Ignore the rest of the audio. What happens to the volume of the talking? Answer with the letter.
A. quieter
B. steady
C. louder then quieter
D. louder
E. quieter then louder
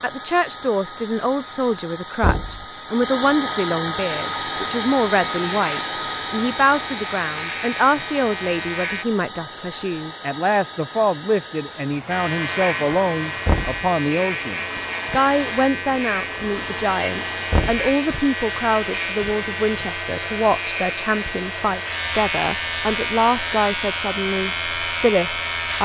B.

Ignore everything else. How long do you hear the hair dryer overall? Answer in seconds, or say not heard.
26 s.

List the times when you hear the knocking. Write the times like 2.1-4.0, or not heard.
2.2-2.6, 13.4-13.8, 17.5-17.9.